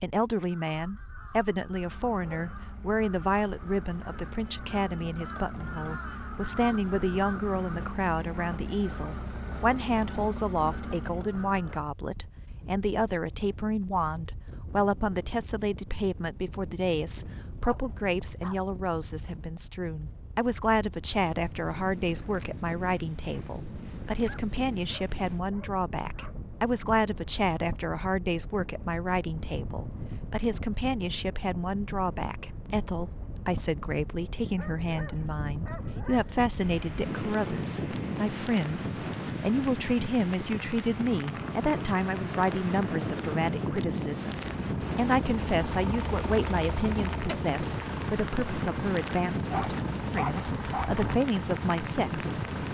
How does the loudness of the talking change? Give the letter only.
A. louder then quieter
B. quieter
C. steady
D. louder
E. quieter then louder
C.